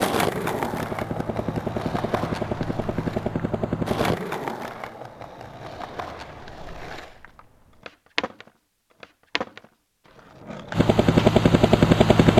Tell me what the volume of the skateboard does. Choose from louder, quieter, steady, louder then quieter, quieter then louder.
quieter.